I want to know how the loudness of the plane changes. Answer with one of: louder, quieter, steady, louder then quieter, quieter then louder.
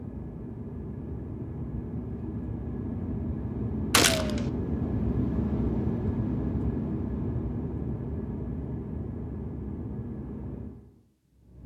louder then quieter.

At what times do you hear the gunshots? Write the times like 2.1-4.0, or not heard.
3.9-4.5.